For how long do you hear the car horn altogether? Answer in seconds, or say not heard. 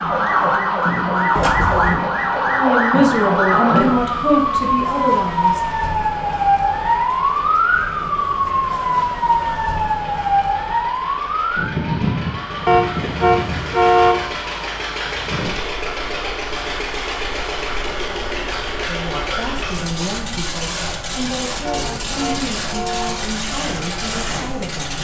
4 s.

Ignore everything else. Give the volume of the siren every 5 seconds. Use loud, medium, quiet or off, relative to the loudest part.
loud, loud, medium, quiet, quiet.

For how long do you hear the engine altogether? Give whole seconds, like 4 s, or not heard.
25 s.